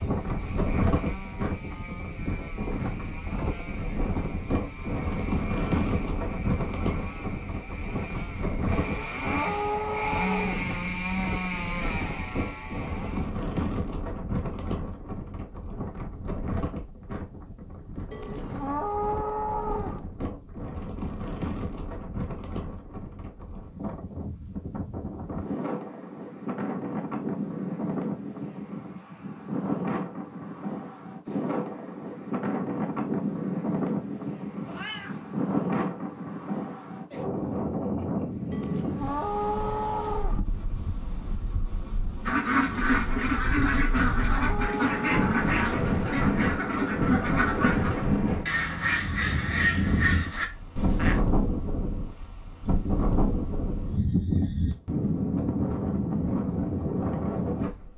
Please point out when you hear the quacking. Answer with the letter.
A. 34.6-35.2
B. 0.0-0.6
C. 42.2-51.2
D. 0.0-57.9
C.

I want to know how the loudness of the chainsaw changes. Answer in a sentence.
The volume of the chainsaw goes up.